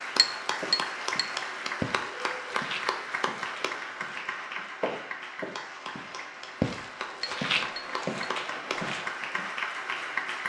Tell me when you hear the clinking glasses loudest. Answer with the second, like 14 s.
1 s.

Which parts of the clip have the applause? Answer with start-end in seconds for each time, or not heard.
0.0-10.4.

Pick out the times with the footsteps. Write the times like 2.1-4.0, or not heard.
0.5-9.5.